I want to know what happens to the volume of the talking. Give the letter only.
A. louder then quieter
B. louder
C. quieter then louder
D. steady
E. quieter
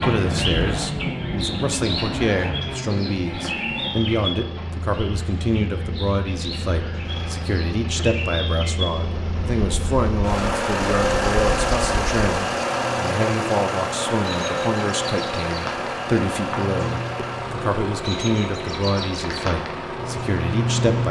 D.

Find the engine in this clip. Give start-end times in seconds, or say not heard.
0.1-21.0.